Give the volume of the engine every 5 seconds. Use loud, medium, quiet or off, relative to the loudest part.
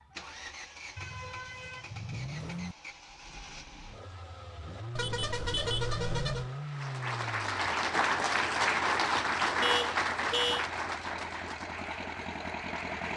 medium, loud, loud.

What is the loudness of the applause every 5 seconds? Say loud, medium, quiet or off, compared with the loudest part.
off, loud, medium.